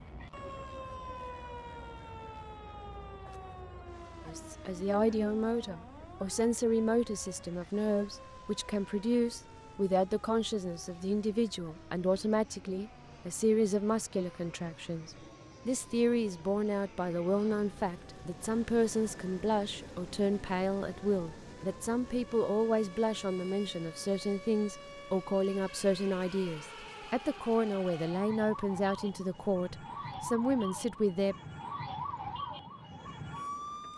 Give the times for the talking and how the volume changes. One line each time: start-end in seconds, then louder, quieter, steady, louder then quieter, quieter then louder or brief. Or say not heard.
4.2-31.4 steady.